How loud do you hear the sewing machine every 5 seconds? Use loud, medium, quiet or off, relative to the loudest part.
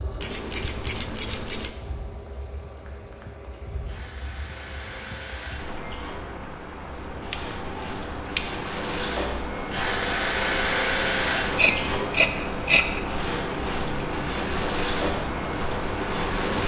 quiet, medium, loud, loud.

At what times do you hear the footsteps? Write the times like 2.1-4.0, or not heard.
not heard.